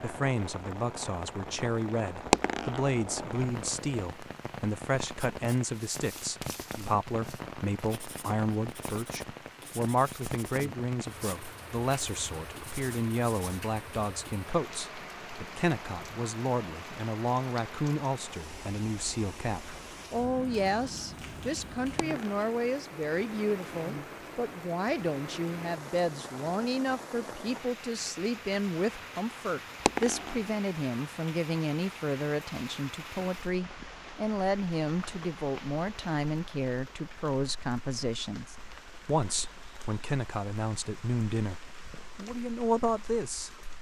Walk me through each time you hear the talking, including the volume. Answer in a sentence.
The talking can be heard from 0.0 to 43.5 s, at a steady volume.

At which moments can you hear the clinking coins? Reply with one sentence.
The clinking coins can be heard from 2.3 to 3.7 s, from 21.9 to 22.4 s and from 29.9 to 30.5 s.